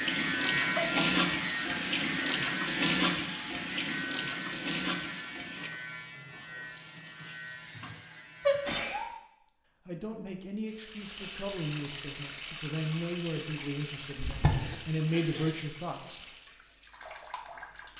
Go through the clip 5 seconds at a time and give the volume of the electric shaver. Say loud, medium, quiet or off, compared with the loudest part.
loud, medium, off, off.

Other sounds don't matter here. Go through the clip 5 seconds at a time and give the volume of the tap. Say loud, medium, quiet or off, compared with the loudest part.
loud, quiet, medium, quiet.